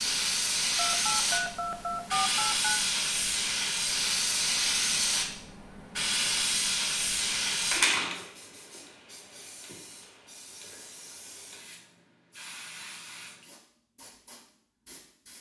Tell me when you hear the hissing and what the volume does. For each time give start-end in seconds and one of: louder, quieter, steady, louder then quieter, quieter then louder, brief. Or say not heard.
0.0-15.3 quieter.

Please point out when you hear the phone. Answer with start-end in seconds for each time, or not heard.
0.8-2.8.